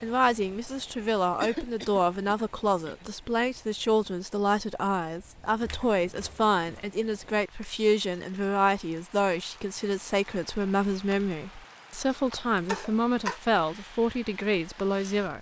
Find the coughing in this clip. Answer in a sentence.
The coughing can be heard from 1.4 to 3.1 s, from 5.6 to 6.9 s and from 12.1 to 13.4 s.